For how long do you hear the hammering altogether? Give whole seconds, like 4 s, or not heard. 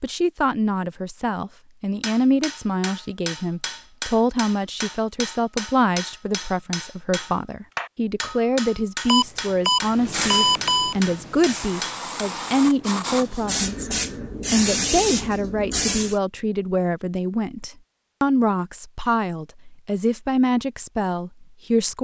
10 s.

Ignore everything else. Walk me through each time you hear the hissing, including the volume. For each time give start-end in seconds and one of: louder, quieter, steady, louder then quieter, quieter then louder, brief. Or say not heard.
9.9-16.1 louder.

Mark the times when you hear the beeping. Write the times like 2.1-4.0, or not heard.
9.1-10.9.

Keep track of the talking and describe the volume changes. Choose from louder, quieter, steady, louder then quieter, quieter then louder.
steady.